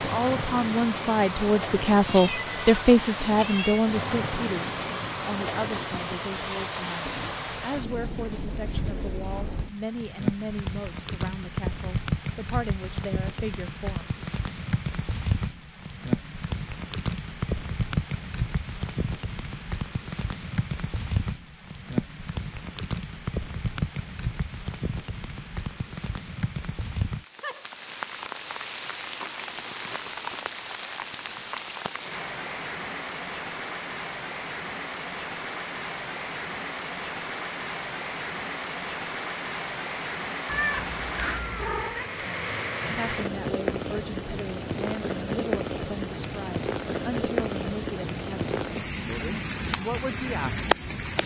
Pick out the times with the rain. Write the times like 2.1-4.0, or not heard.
0.0-51.2.